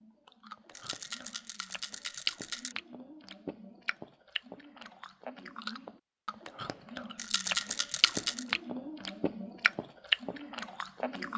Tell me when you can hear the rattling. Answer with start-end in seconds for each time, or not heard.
0.8-2.8, 7.2-8.6.